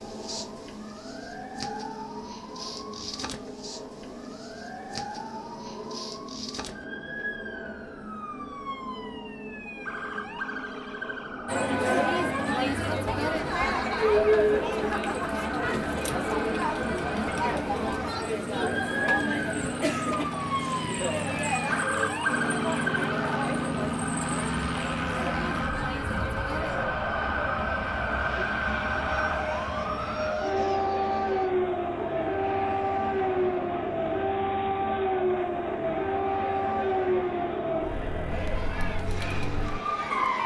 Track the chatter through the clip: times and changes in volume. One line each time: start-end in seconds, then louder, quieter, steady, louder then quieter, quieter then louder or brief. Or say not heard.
11.4-40.4 quieter.